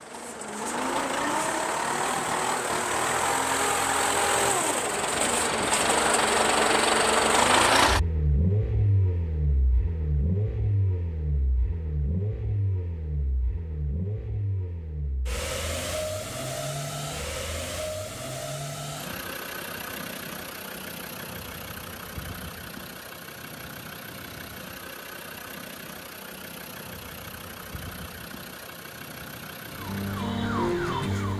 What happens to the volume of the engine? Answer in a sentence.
The loudness of the engine goes down.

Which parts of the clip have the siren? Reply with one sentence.
The siren can be heard from 29.6 to 31.3 s.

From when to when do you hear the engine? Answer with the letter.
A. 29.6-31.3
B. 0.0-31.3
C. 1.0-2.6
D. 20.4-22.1
B.